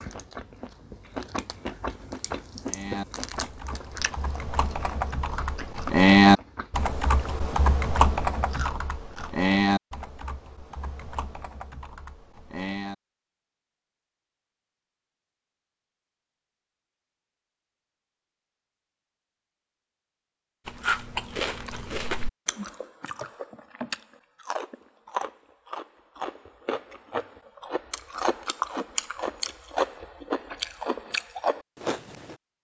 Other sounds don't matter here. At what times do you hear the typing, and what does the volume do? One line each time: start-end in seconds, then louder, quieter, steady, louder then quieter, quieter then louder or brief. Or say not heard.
2.6-12.9 louder then quieter.